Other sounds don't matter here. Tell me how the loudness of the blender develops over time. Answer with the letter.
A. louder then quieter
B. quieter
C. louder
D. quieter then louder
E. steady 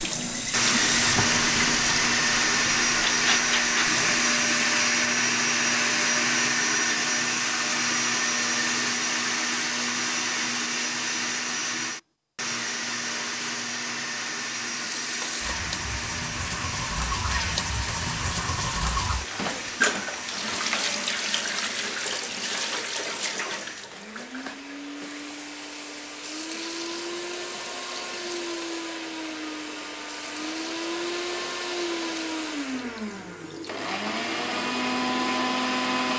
D.